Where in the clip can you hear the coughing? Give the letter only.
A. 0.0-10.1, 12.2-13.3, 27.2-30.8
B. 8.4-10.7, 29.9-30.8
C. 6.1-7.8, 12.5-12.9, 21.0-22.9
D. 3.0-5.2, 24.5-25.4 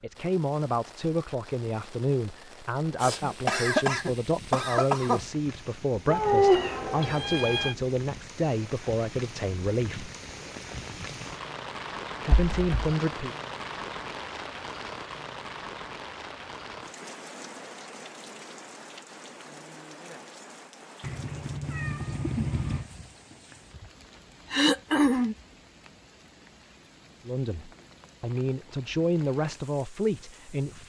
D.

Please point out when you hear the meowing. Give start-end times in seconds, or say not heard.
6.1-7.8, 12.5-12.9, 21.0-22.9.